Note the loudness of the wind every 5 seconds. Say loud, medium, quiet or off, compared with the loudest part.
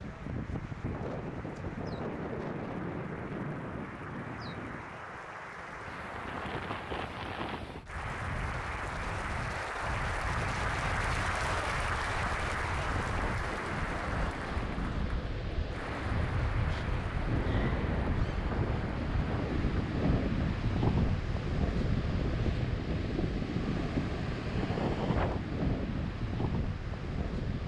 medium, medium, medium, loud, loud, loud.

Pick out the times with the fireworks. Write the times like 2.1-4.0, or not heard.
not heard.